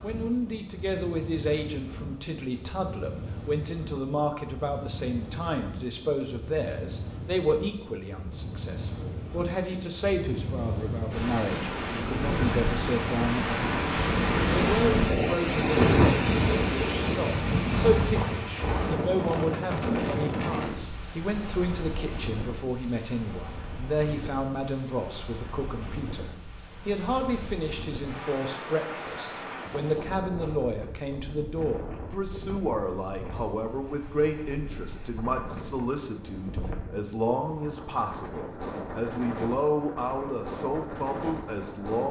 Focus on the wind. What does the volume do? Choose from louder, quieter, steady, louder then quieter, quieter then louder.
louder then quieter.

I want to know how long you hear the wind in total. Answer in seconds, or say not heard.
42 s.